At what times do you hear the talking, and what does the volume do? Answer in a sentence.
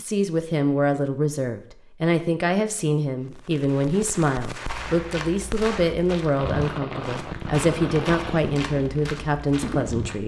You can hear the talking from 0.0 to 10.2 s, at a steady volume.